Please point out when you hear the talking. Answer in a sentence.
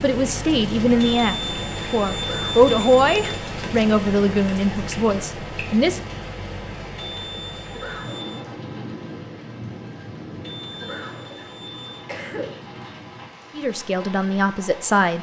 You can hear the talking from 0.0 to 6.0 s and from 13.6 to 15.1 s.